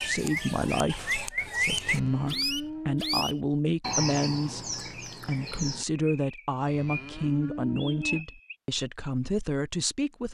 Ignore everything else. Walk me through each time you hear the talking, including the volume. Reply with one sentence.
The talking can be heard from 0.0 to 10.3 s, at a steady volume.